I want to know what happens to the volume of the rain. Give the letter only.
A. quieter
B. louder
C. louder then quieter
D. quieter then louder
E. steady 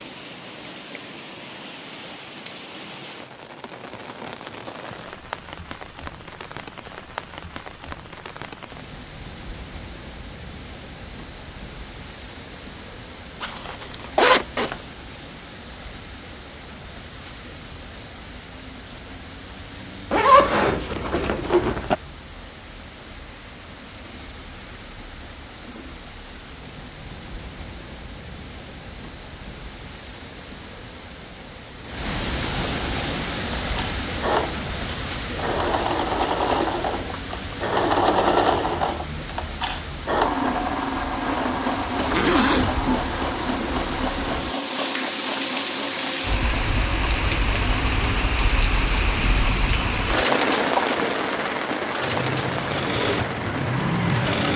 B.